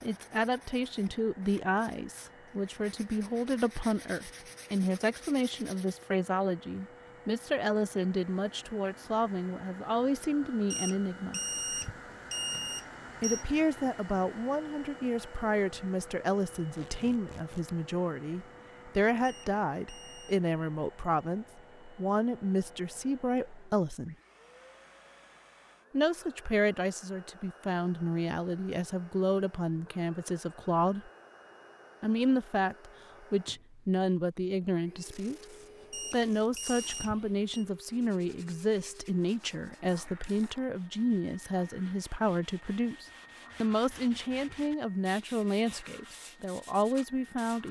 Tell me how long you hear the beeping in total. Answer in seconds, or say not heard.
6 s.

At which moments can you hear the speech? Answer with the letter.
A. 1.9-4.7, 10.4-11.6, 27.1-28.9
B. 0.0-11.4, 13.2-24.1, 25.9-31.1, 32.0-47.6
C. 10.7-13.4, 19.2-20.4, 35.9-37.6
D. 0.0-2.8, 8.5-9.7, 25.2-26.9
B.